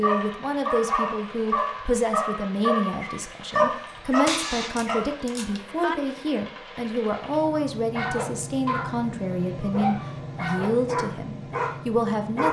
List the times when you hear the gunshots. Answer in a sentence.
The gunshots can be heard from 4.2 to 6.0 s.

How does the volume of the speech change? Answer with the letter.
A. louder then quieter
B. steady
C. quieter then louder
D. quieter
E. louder
B.